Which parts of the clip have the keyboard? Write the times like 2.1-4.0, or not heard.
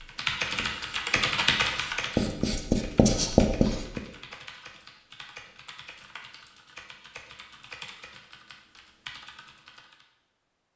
0.1-10.1.